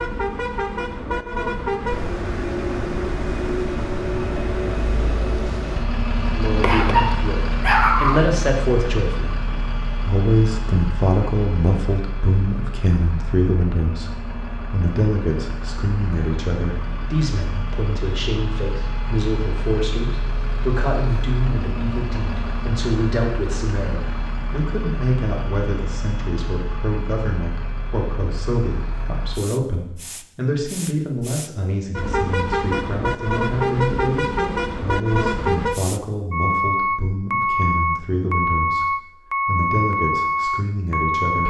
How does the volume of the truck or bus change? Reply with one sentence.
The volume of the truck or bus goes down, then up.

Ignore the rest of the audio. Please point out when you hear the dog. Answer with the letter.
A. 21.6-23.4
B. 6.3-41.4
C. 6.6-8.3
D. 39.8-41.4
C.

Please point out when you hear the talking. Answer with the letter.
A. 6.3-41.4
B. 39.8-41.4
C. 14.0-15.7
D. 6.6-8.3
A.